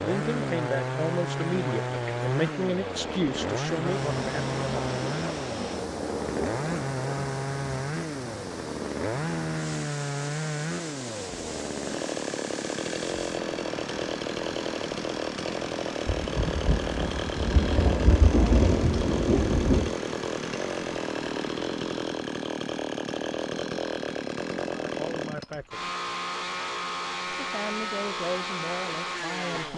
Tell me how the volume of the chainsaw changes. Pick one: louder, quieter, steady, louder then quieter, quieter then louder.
steady.